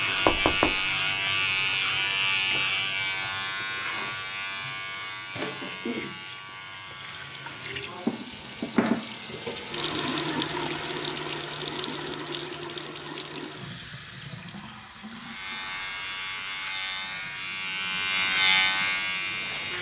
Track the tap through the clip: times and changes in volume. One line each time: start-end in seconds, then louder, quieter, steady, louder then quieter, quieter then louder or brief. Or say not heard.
0.0-19.7 louder then quieter.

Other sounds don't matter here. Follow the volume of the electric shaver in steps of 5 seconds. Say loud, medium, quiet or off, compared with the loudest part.
loud, quiet, off, loud.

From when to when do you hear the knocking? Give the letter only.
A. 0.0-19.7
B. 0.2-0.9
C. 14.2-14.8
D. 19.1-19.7
B.